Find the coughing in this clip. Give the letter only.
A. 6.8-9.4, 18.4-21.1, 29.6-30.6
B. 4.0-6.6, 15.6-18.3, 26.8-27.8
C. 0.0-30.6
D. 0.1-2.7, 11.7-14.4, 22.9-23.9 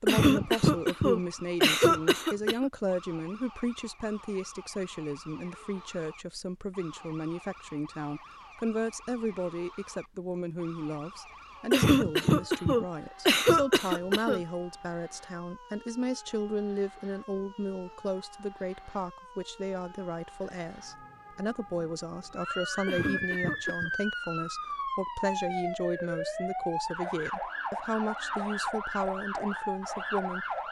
D.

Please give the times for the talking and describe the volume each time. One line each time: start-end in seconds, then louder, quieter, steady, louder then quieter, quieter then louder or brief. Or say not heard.
0.0-30.6 steady.